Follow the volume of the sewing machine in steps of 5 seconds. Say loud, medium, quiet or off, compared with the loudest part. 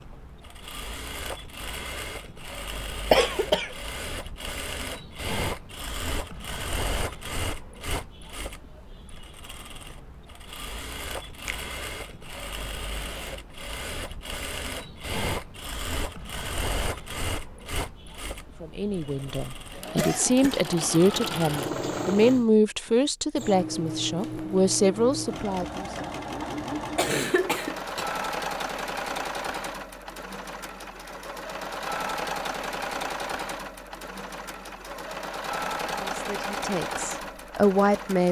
medium, loud, medium, loud, loud, loud, loud, loud.